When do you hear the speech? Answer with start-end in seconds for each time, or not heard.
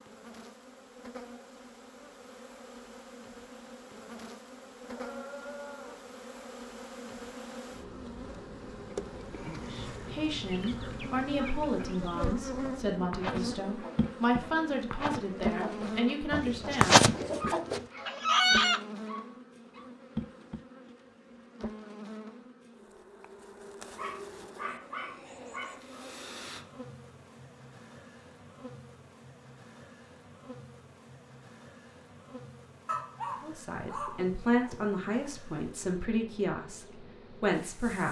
9.6-17.0, 33.4-38.0.